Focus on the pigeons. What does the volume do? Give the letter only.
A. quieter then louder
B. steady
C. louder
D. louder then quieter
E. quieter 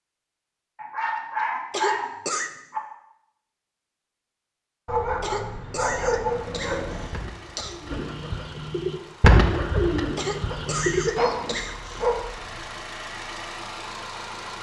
D.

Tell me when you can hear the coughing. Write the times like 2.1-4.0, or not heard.
1.7-2.5, 5.2-7.8, 10.2-12.1.